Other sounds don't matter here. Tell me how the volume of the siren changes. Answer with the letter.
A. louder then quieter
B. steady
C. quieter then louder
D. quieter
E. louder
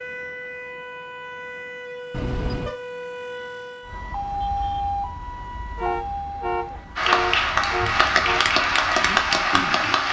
A.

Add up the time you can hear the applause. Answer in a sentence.
You can hear the applause for 3 seconds altogether.